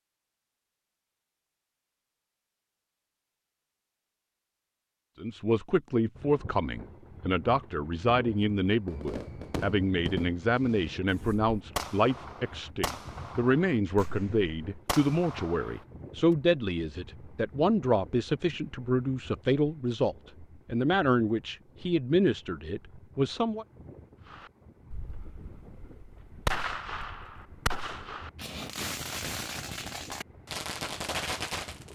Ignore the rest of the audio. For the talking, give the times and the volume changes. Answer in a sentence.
You can hear the talking from 5.2 to 23.6 s, at a steady volume.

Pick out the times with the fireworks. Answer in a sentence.
The fireworks can be heard from 8.8 to 15.8 s and from 24.3 to 31.9 s.